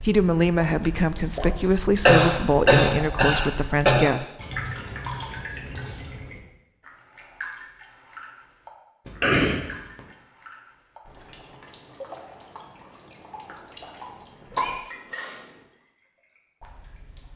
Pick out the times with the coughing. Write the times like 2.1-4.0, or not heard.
2.0-4.1, 9.1-9.6, 14.6-15.3.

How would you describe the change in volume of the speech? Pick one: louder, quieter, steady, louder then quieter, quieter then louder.
steady.